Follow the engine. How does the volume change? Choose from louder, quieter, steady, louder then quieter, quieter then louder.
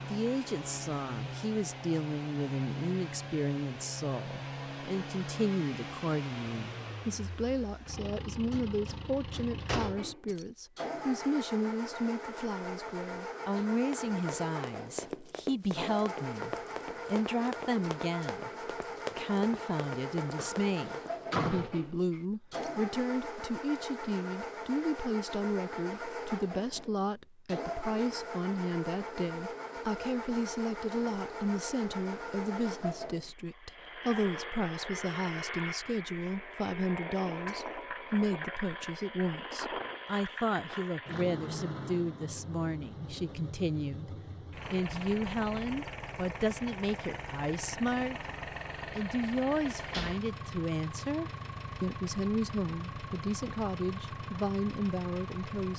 steady.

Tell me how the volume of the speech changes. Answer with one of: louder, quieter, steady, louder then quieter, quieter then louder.
steady.